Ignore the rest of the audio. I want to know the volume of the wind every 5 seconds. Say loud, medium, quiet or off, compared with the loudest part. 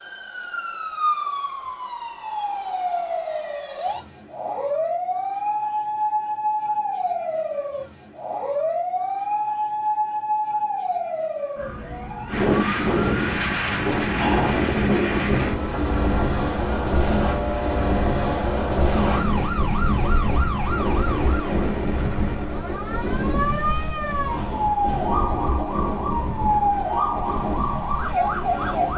off, off, loud, loud, medium, medium.